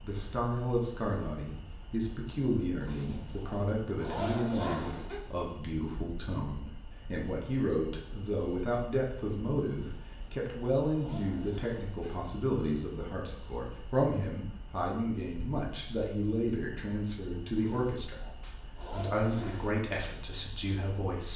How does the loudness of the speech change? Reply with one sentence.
The loudness of the speech stays about the same.